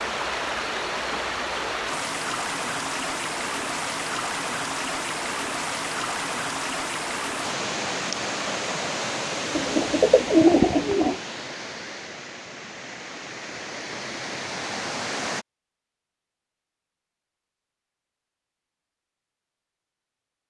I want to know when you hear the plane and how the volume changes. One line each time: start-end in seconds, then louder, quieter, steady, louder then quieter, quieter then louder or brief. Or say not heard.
not heard.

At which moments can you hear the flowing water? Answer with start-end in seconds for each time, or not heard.
0.0-15.4.